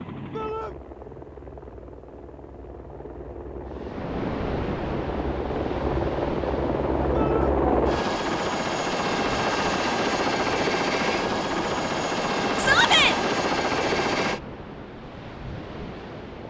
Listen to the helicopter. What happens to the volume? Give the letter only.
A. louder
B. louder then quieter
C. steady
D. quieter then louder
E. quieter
A.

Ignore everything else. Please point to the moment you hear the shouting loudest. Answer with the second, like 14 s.
13 s.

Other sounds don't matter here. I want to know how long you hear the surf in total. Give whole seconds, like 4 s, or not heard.
13 s.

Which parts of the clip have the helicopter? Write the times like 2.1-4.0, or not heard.
0.0-14.4.